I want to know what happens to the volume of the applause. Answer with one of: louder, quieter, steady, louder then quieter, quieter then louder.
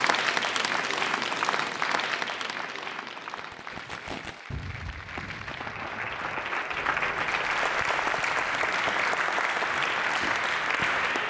quieter then louder.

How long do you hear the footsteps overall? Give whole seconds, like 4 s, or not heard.
not heard.